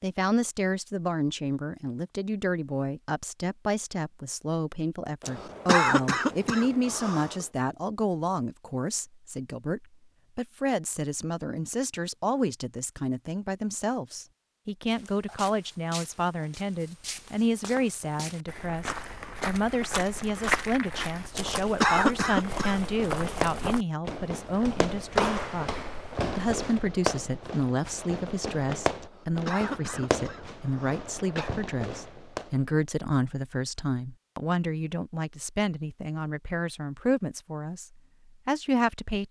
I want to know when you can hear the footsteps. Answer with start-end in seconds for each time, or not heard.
14.9-26.8.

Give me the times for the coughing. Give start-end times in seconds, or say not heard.
5.2-7.5, 21.4-23.1, 29.0-31.5.